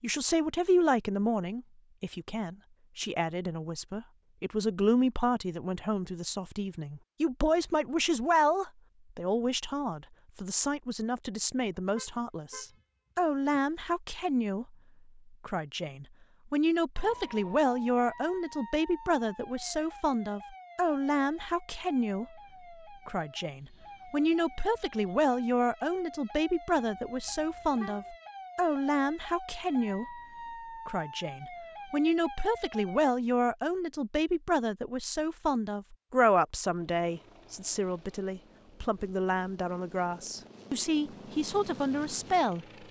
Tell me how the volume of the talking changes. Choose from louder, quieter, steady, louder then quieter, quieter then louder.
steady.